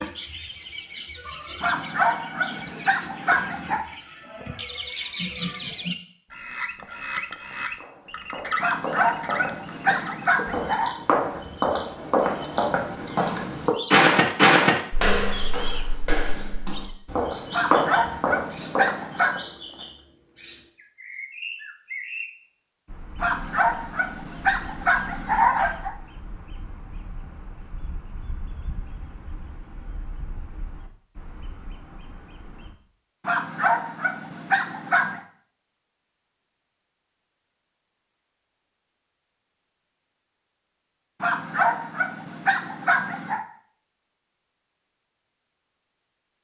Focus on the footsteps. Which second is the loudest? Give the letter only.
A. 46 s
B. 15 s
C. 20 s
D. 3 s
B.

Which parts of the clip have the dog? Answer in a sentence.
The dog can be heard from 1.6 to 3.9 s, from 8.6 to 10.9 s, from 17.5 to 19.4 s, from 23.1 to 25.9 s, from 33.2 to 35.2 s and from 41.2 to 43.5 s.